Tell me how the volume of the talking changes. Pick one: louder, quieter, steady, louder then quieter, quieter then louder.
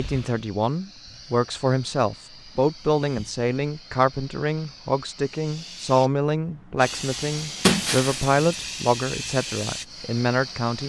steady.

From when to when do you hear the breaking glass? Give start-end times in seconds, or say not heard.
7.6-8.7.